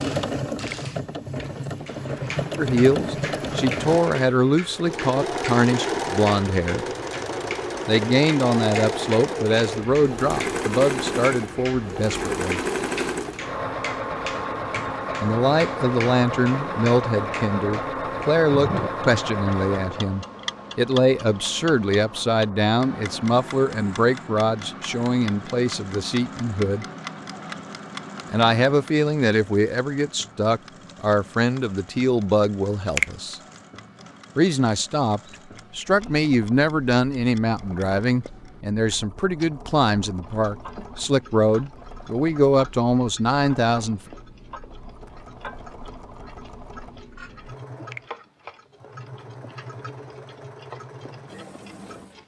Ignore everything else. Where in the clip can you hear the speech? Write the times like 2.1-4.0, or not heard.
2.5-6.8, 7.8-12.6, 15.2-26.9, 28.3-33.4, 34.4-44.0.